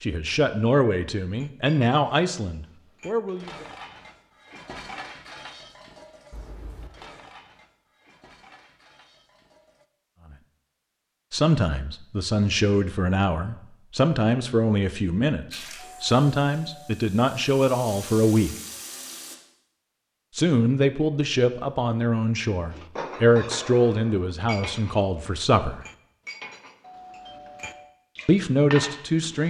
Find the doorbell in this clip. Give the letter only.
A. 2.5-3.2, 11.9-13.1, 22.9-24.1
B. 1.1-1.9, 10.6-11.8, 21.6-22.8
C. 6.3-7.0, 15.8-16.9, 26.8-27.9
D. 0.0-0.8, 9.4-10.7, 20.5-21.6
C.